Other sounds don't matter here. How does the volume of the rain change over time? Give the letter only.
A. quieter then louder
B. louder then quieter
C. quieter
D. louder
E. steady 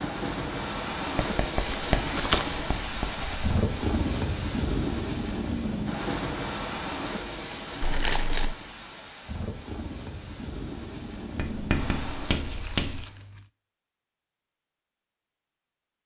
C.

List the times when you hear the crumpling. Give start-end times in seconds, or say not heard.
1.6-2.5, 7.8-8.6, 12.4-13.5.